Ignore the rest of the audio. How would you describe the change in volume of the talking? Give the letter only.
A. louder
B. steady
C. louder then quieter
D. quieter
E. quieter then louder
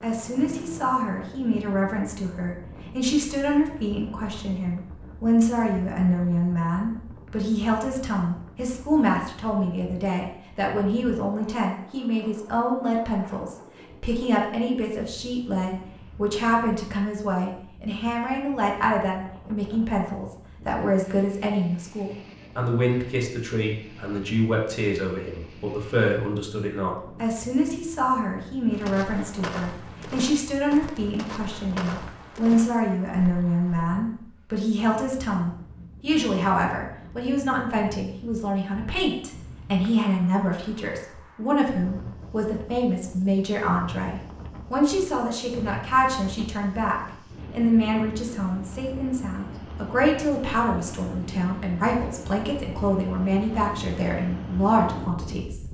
B.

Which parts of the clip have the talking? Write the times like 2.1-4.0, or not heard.
0.0-55.6.